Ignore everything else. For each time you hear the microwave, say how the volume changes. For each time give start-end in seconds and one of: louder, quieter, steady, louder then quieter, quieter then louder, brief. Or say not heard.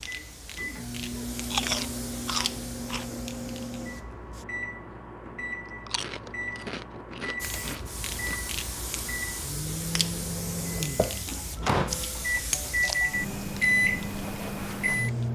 0.0-15.3 louder.